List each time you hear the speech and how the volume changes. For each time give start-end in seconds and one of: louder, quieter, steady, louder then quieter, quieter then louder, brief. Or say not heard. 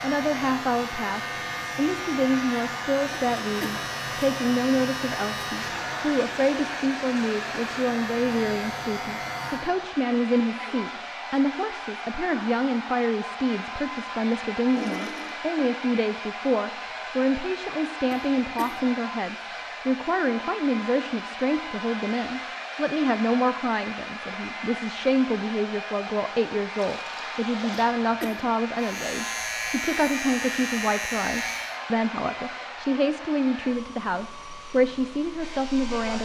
0.0-36.2 steady.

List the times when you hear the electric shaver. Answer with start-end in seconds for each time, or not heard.
0.0-9.8, 28.8-31.8.